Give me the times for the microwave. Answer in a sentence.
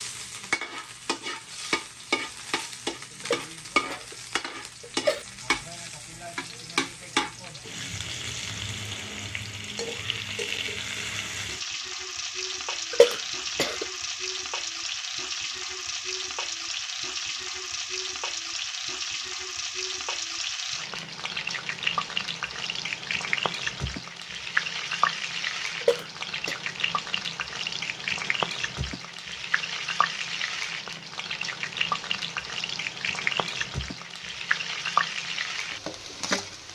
You can't hear the microwave here.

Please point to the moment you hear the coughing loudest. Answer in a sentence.
The volume of the coughing peaks at 13 seconds.